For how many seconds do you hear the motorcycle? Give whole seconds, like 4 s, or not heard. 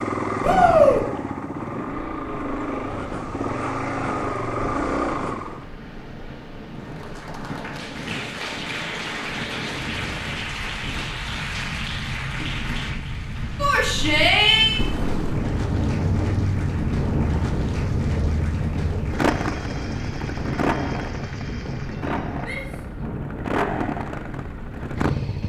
17 s.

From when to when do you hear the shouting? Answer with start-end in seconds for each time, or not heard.
0.4-1.0, 13.6-14.8, 22.4-22.8.